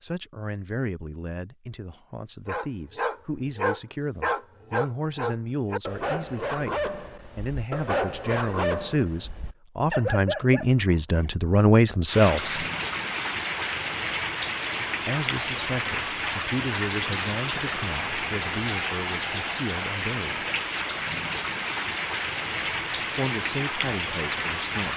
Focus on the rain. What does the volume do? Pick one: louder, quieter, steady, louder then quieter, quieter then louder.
steady.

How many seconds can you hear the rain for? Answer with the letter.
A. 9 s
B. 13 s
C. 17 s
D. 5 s
B.